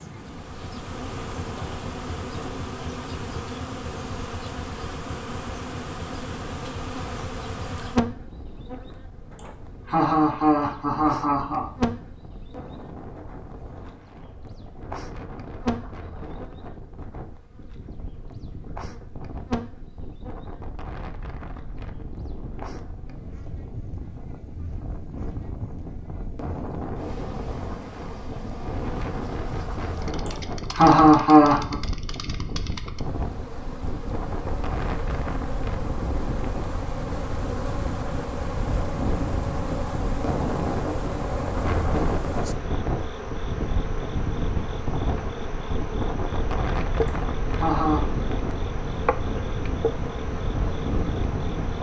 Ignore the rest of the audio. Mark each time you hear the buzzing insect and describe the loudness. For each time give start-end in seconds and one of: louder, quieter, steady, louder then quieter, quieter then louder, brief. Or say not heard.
0.0-51.7 quieter then louder.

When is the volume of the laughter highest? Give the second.
31 s.